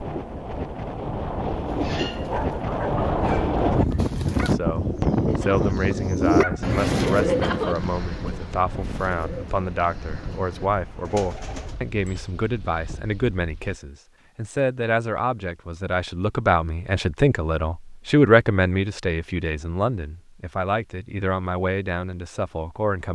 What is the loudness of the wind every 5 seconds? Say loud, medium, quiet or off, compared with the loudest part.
loud, loud, quiet, off, off.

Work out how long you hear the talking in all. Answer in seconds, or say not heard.
19 s.